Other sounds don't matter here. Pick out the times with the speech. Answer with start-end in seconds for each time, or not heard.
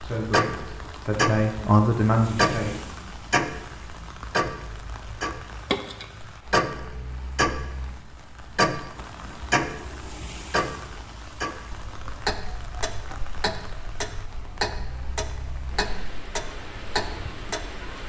0.0-2.9.